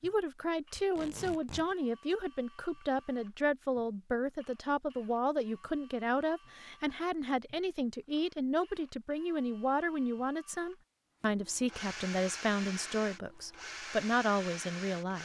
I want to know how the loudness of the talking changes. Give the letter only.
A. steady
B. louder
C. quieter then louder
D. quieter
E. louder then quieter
A.